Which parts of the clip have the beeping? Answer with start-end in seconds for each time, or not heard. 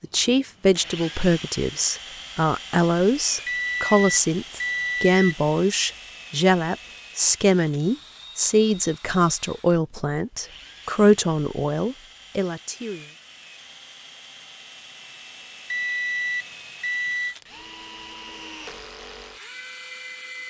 3.5-5.3, 15.7-17.4.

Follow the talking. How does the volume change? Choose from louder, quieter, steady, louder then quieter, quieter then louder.
steady.